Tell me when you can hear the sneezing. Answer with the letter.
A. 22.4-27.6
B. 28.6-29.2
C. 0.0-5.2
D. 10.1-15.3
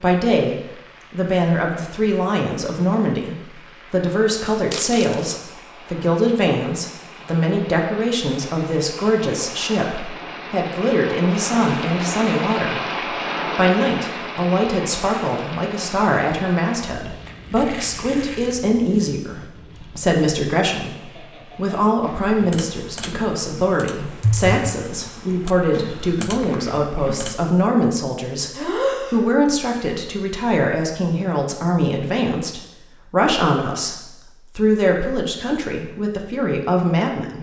B.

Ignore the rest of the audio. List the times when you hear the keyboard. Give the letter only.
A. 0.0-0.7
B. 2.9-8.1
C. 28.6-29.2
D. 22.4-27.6
D.